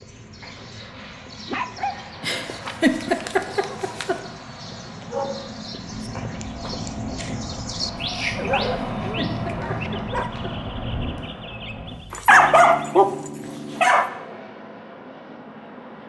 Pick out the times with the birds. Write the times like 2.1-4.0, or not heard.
0.0-13.0.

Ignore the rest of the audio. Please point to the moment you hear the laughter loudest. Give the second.
3 s.